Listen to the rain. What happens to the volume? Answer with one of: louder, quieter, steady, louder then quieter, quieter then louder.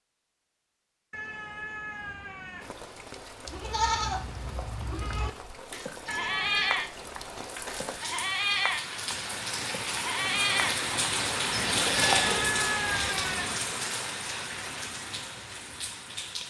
louder then quieter.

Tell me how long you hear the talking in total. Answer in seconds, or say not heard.
not heard.